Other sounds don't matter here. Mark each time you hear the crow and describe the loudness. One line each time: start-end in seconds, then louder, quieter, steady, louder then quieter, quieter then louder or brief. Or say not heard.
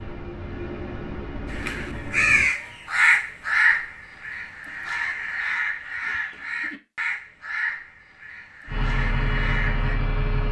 1.5-9.9 quieter.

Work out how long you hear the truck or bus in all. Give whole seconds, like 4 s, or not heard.
4 s.